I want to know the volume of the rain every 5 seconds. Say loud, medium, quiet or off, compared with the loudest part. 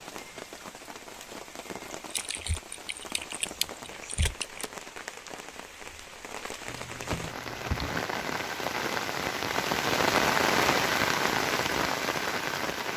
quiet, medium, loud.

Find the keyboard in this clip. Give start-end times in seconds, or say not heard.
2.1-4.7, 6.7-8.1.